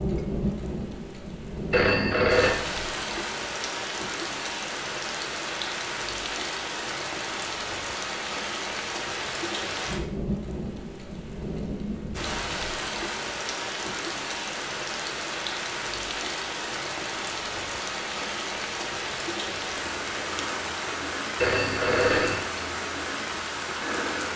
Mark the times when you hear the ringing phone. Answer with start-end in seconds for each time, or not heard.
1.7-2.5, 21.4-22.4.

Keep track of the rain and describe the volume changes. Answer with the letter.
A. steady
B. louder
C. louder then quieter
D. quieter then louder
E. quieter
A.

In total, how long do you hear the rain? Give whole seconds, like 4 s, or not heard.
24 s.